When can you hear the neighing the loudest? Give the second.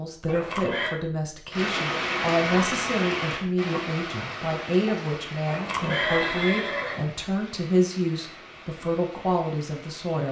6 s.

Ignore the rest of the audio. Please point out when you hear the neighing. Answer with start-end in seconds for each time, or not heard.
0.2-0.9, 5.5-7.0.